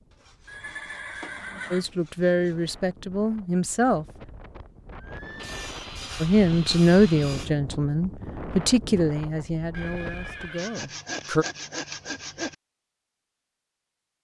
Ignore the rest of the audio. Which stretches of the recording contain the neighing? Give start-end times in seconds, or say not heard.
0.5-1.9, 5.0-5.6, 9.7-10.8.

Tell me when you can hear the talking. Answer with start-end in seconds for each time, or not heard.
1.7-4.0, 6.2-11.4.